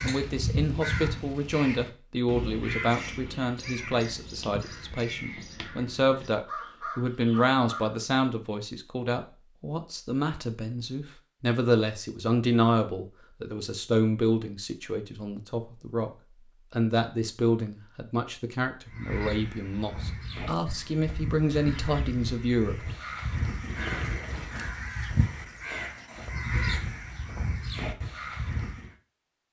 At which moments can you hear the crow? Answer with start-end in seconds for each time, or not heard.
0.0-8.1, 18.9-28.9.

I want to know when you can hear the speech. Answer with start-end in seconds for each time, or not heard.
0.0-16.1, 16.7-22.9.